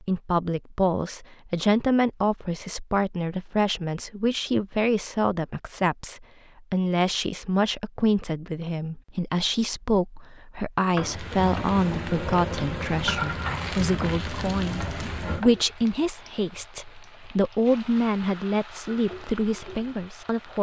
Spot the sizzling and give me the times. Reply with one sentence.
The sizzling can be heard from 10.9 to 20.5 s.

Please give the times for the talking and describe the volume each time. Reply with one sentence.
You can hear the talking from 0.0 to 20.5 s, at a steady volume.